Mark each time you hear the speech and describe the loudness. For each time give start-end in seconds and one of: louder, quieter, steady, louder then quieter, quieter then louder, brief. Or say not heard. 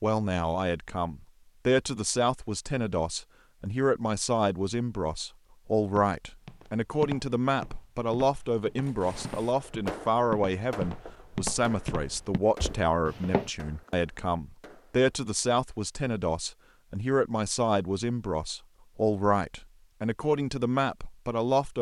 0.0-21.7 steady.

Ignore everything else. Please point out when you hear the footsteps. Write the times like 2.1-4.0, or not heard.
6.0-13.5.